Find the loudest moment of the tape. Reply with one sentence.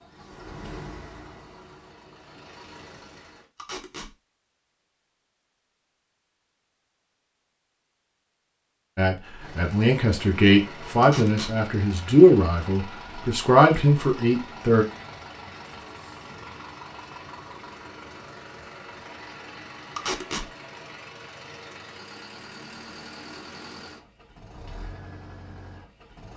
The volume of the tape peaks at 20 seconds.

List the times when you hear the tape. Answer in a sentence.
The tape can be heard from 3.5 to 4.1 s, from 11.0 to 11.6 s and from 19.9 to 20.4 s.